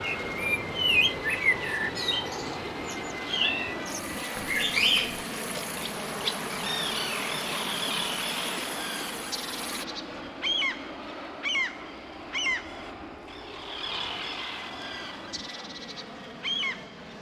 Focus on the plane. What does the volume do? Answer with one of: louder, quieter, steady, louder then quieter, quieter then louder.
quieter.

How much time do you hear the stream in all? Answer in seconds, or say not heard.
10 s.